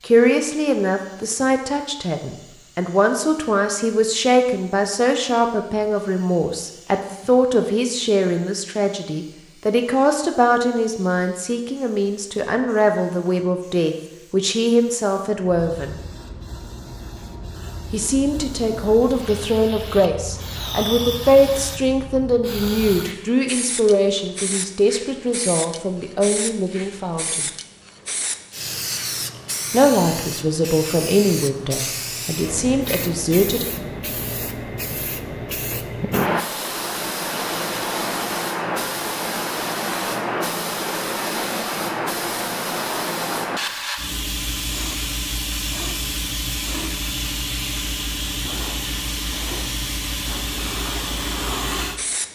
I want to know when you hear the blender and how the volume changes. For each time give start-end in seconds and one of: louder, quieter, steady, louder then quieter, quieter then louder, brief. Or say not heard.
not heard.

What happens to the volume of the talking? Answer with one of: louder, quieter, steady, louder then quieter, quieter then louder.
steady.